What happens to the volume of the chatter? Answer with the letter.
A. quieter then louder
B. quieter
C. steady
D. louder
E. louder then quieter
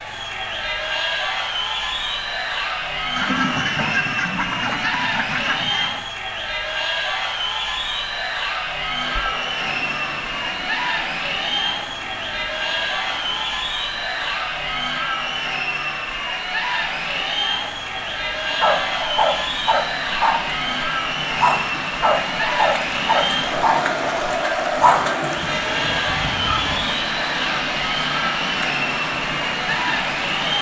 C.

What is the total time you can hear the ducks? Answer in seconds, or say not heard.
3 s.